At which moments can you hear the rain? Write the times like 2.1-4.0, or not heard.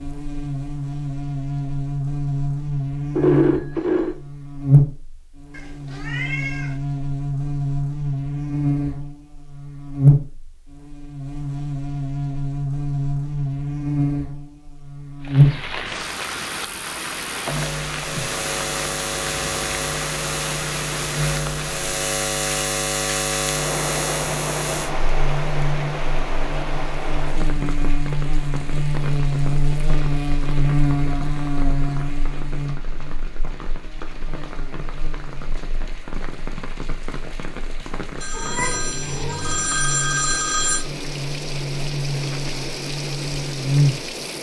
15.2-44.3.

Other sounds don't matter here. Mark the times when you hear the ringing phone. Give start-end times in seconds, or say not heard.
3.1-4.2, 38.2-40.9.